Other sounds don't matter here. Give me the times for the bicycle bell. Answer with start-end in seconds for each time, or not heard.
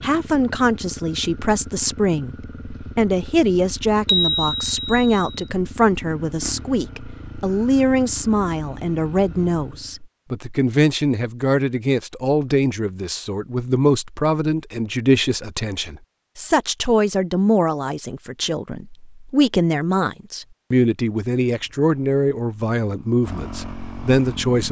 4.0-5.5.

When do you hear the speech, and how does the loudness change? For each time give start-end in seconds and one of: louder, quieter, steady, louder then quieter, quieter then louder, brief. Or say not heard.
0.0-24.6 steady.